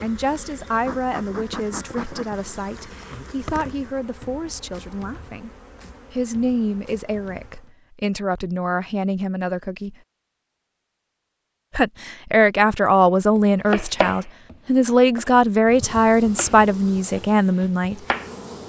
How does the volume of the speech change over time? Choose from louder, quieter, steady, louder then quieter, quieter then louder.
louder.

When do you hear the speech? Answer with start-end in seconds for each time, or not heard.
0.0-5.5, 6.1-9.9, 11.7-17.9.